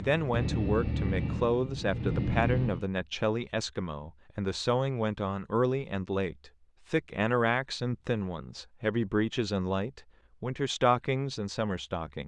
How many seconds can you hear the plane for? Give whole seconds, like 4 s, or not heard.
3 s.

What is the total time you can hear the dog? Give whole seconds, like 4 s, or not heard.
not heard.